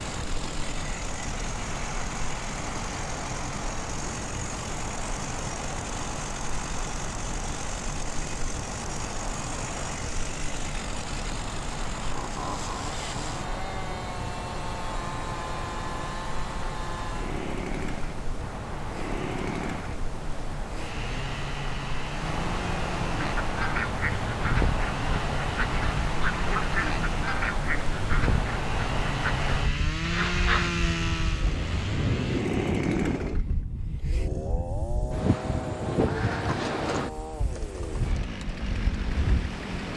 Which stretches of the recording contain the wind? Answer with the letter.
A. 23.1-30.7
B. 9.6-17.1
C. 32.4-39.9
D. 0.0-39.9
D.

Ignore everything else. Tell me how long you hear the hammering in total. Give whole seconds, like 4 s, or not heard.
not heard.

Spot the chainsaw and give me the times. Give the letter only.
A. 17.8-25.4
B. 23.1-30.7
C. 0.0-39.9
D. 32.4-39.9
C.